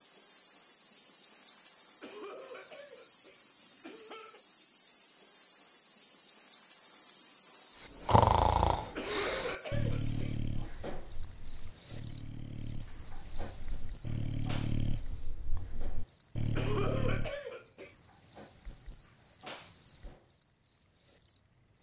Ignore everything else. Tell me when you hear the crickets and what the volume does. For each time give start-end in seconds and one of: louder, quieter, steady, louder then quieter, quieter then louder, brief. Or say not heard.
0.0-21.7 louder then quieter.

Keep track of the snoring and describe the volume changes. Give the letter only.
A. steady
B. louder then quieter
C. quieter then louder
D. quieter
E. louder
C.